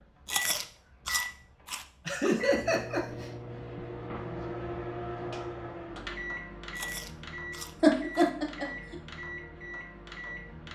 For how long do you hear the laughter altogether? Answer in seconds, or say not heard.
2 s.